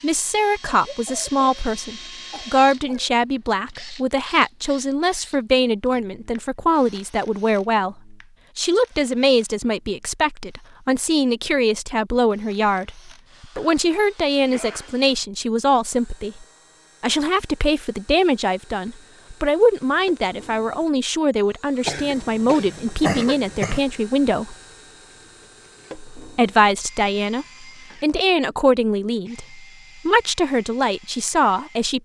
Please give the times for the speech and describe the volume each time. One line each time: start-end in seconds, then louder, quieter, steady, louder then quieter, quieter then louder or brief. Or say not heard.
0.0-24.6 steady
26.1-32.0 steady.